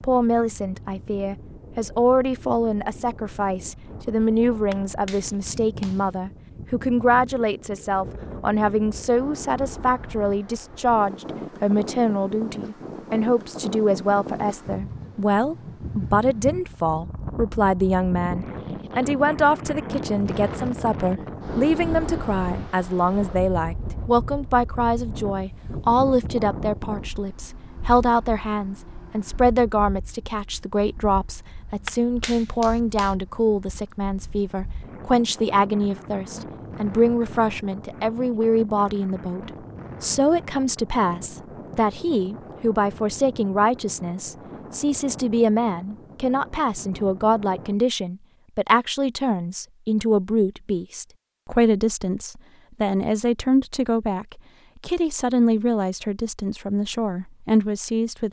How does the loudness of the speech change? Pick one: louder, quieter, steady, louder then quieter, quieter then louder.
steady.